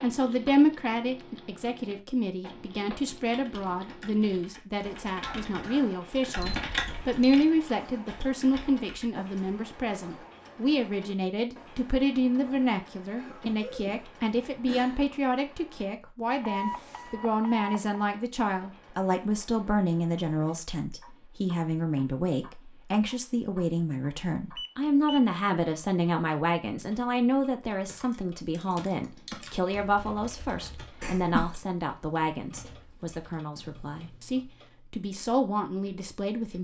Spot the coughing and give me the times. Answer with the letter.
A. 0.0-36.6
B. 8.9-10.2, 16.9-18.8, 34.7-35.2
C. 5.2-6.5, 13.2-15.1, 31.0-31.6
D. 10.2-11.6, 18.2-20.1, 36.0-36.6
C.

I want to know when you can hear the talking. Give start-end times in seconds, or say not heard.
0.0-36.6.